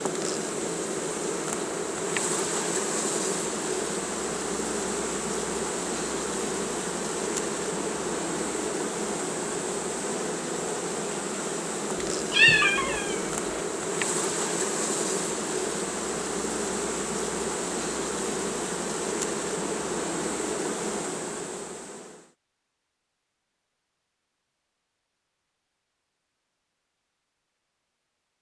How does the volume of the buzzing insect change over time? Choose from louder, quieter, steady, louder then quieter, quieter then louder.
steady.